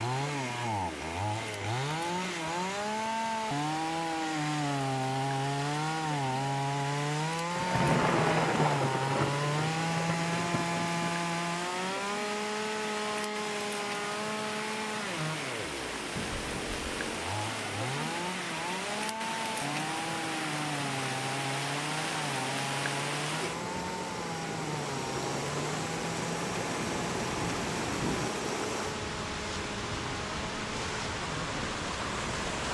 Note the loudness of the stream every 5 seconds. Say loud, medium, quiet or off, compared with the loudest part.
medium, medium, medium, loud, loud, loud, loud.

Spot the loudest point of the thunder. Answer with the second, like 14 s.
8 s.